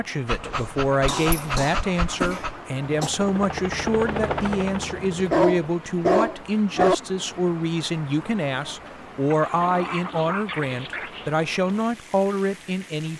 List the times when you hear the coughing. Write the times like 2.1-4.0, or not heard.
0.5-3.1.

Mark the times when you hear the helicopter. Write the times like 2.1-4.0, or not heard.
2.9-5.5.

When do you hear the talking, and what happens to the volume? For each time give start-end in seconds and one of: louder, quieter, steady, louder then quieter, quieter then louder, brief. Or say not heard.
0.0-13.1 steady.